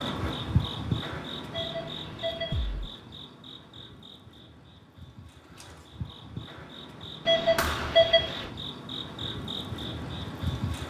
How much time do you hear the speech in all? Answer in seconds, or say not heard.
not heard.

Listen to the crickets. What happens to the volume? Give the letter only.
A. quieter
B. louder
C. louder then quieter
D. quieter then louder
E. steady
D.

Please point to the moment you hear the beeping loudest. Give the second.
8 s.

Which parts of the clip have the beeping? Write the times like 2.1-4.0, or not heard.
1.5-2.8, 7.2-8.5.